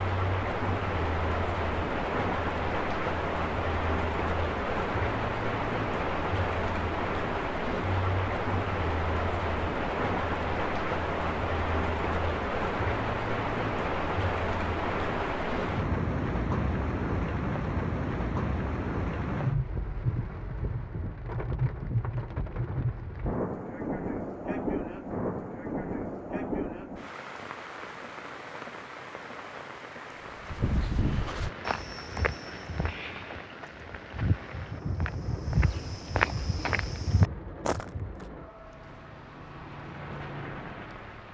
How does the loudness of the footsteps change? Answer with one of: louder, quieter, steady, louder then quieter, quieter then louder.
quieter then louder.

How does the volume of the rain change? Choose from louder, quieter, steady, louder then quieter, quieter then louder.
quieter.